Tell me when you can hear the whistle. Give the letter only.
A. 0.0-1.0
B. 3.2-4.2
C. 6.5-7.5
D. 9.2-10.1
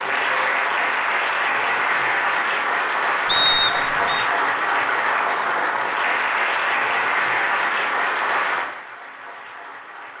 B.